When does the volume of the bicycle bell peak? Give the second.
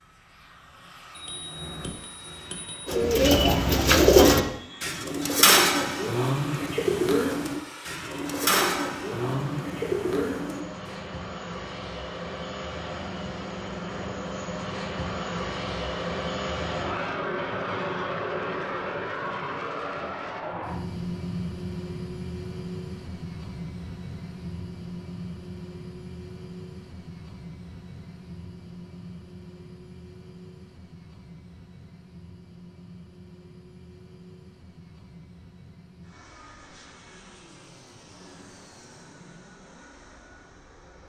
2 s.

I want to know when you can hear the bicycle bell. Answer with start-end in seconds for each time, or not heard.
1.1-3.0.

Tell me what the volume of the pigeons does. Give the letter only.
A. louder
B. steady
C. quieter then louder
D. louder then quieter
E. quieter
E.